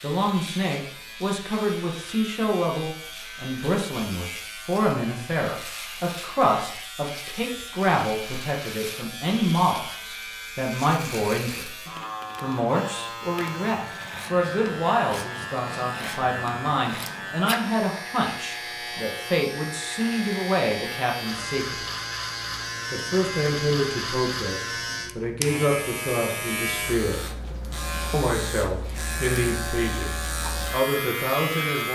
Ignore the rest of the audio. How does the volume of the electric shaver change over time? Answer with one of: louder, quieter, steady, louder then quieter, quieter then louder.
louder.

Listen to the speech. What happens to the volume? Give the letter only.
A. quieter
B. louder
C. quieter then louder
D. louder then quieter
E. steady
E.